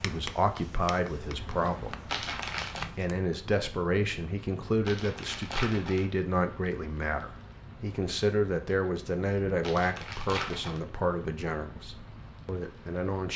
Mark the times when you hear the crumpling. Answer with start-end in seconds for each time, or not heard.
2.0-2.9, 4.8-6.0, 9.6-10.8.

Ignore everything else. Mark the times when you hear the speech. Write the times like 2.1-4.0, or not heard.
0.0-2.1, 3.0-13.3.